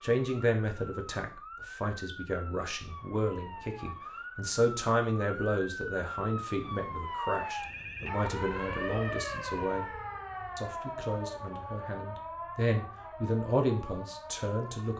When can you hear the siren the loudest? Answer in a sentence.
The loudest moment of the siren is at 9 seconds.